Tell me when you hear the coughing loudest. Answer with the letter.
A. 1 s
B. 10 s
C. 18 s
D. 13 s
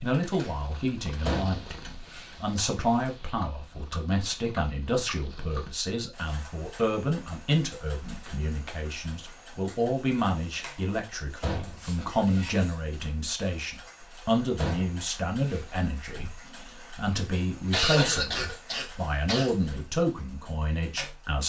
C.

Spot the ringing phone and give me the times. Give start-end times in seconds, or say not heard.
not heard.